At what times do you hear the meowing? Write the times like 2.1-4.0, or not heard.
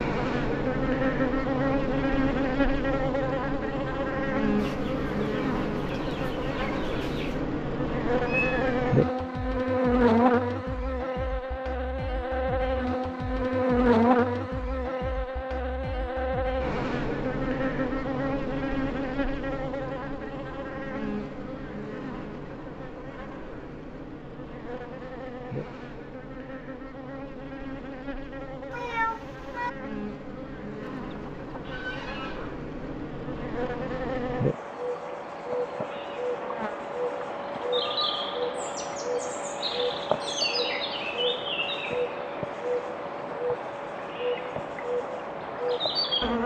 8.2-8.8, 28.7-29.7.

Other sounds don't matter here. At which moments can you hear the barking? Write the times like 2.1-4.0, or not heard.
not heard.